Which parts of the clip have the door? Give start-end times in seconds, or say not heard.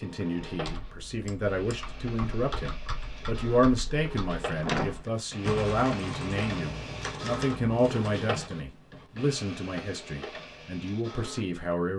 4.7-5.7.